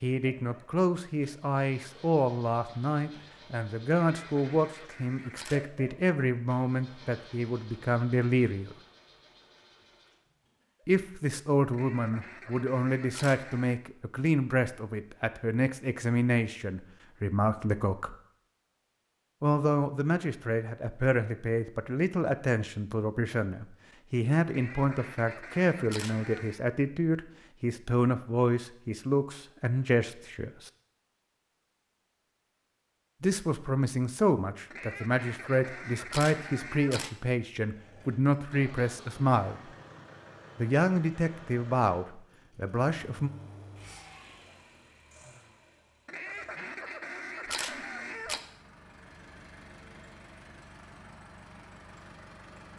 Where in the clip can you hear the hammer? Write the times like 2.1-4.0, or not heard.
not heard.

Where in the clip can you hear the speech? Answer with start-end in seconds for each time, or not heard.
0.0-8.8, 10.8-18.1, 19.4-30.7, 33.2-39.7, 40.5-43.3.